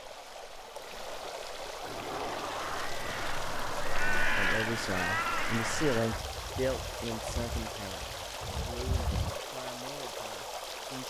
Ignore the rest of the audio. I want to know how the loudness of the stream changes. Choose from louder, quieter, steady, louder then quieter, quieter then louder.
steady.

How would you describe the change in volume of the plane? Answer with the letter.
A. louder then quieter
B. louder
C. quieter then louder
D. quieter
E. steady
E.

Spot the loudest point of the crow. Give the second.
4 s.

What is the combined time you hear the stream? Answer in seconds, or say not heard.
11 s.